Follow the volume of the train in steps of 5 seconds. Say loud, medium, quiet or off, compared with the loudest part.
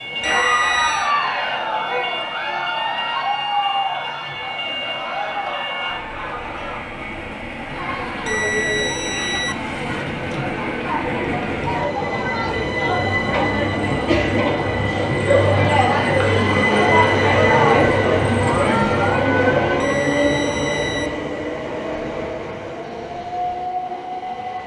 medium, medium, medium, loud, loud.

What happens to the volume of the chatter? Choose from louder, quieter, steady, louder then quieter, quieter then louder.
quieter then louder.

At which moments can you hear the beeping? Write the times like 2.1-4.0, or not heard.
0.2-1.1, 8.2-9.6, 19.8-21.1.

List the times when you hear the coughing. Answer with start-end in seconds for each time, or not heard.
not heard.